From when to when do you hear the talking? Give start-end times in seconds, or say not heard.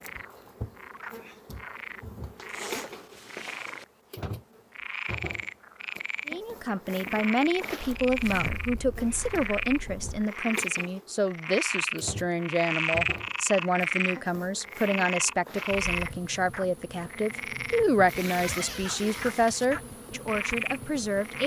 6.2-21.4.